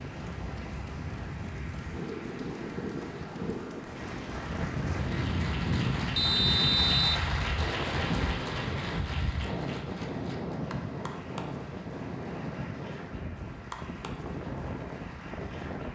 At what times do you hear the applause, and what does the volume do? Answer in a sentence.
You can hear the applause from 0.0 to 15.8 s, getting louder then quieter.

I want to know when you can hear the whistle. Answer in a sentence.
The whistle can be heard from 6.2 to 7.2 s.